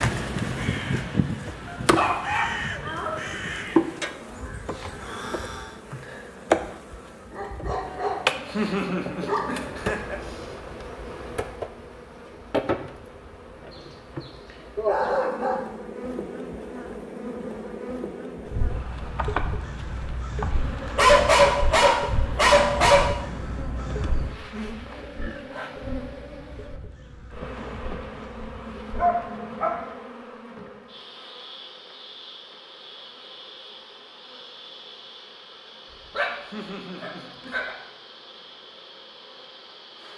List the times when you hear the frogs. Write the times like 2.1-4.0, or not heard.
not heard.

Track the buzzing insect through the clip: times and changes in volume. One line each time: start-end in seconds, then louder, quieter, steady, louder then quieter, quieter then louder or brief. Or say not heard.
0.0-40.1 quieter.